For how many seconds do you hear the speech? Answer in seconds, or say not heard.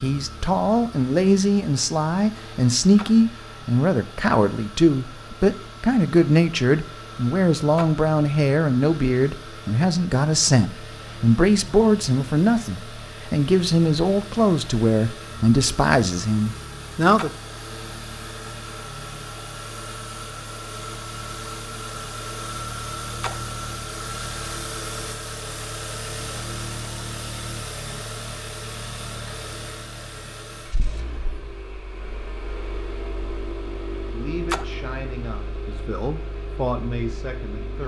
21 s.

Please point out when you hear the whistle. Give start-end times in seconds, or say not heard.
not heard.